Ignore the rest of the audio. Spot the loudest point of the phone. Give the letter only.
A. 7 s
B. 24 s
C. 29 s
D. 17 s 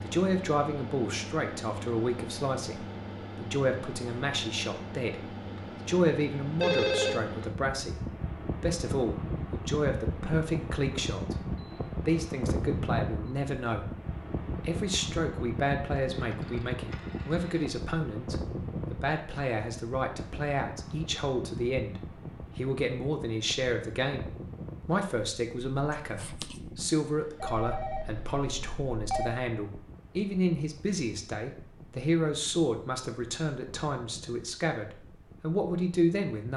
A.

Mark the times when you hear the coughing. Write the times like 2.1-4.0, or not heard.
25.9-26.6.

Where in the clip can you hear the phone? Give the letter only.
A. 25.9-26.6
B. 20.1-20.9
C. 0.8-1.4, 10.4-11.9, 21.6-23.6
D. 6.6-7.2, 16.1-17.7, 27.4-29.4
D.